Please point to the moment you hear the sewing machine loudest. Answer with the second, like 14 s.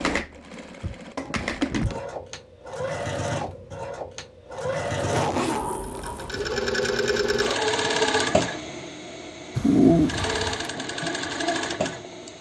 10 s.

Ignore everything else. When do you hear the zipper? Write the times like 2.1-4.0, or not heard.
5.1-6.5.